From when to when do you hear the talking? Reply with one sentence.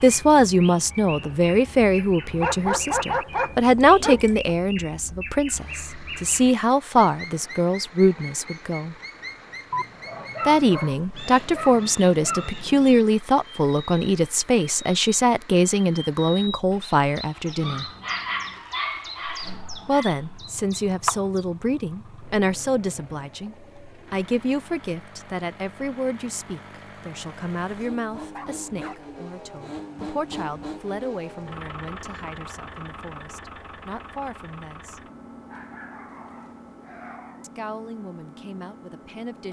You can hear the talking from 0.0 to 8.9 s, from 10.4 to 17.9 s, from 19.9 to 35.0 s and from 37.4 to 39.4 s.